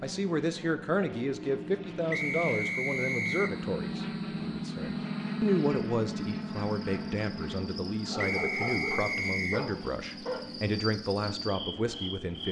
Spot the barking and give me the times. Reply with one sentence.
You can hear the barking from 8.1 to 10.4 s.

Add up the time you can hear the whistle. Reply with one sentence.
The whistle can be heard for 3 seconds in total.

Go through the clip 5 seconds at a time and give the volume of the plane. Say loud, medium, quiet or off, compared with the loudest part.
loud, loud, medium.